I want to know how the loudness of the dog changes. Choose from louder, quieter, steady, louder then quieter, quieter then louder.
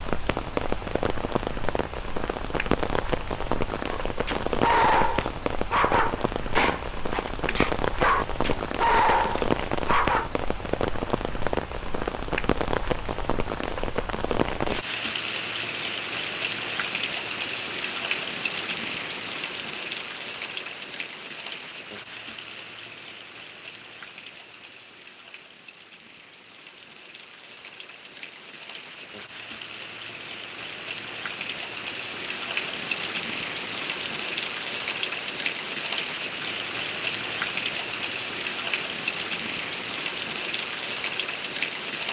quieter then louder.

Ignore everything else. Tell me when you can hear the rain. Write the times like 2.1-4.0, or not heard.
0.0-42.0.